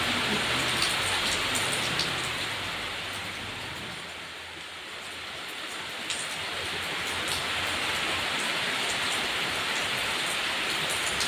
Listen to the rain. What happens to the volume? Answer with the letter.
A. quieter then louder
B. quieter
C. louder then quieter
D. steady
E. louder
A.